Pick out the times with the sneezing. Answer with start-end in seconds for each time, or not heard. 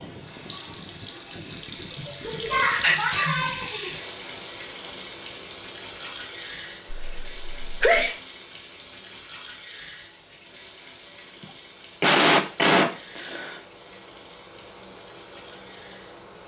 1.8-4.0, 6.9-8.2, 11.4-13.6.